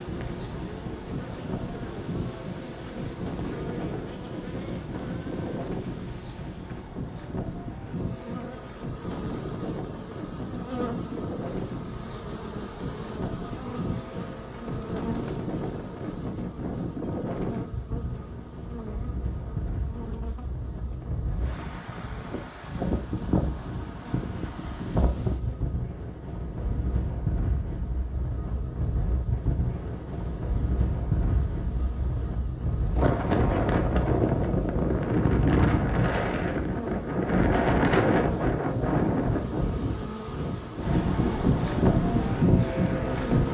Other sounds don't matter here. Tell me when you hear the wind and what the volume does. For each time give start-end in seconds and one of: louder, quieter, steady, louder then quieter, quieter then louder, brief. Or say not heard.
0.0-43.4 louder.